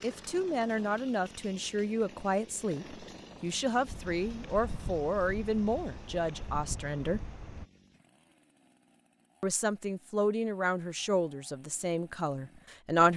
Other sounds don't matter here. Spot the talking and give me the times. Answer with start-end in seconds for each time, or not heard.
0.0-7.2, 9.4-13.1.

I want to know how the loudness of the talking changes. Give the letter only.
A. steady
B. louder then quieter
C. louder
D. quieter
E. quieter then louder
A.